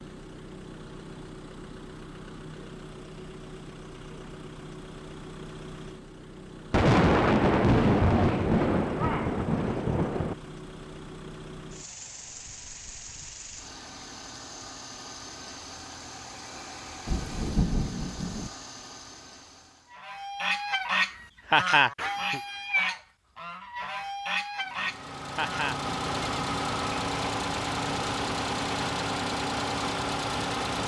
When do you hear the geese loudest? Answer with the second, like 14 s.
22 s.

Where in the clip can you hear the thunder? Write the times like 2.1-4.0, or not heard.
6.7-10.3, 17.1-18.5.